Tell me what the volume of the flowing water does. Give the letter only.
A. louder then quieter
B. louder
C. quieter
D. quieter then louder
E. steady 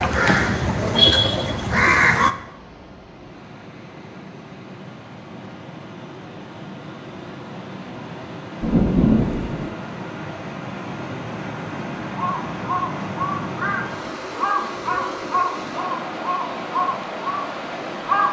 B.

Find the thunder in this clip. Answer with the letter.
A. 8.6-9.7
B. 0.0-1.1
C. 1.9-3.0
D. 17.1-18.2
A.